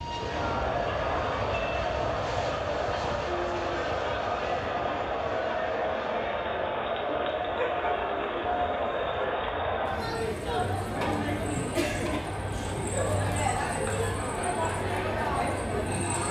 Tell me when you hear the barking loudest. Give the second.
8 s.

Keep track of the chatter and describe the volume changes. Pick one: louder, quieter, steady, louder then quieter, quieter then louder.
steady.